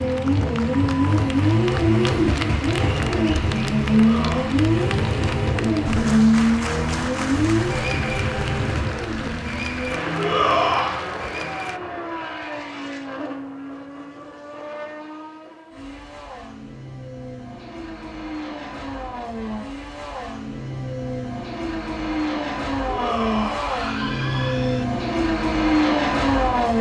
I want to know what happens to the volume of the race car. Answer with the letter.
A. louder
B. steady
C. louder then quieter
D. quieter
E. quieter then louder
E.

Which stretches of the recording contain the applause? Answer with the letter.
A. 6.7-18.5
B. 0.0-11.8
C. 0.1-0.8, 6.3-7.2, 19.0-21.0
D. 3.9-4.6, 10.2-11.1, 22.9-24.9
B.